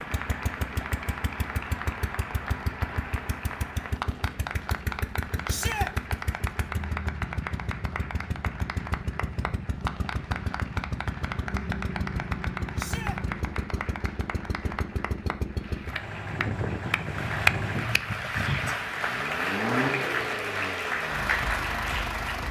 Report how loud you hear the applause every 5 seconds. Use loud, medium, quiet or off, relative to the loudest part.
medium, medium, medium, loud, loud.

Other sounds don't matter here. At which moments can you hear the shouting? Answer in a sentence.
You can hear the shouting from 5.5 to 5.9 s, from 12.8 to 13.2 s and from 18.3 to 18.8 s.